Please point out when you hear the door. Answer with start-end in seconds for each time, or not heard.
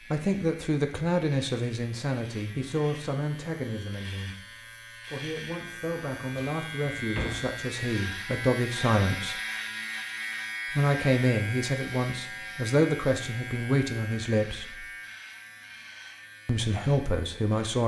6.3-7.6.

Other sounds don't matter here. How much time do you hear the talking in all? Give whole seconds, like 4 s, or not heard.
15 s.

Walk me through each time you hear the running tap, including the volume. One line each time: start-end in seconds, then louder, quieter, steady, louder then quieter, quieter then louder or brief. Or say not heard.
not heard.